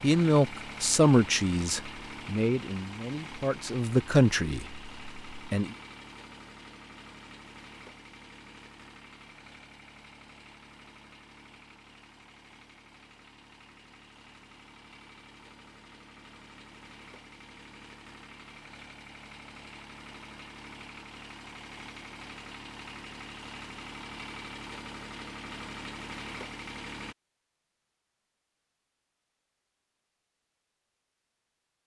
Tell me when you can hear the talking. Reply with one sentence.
The talking can be heard from 0.0 to 5.8 s.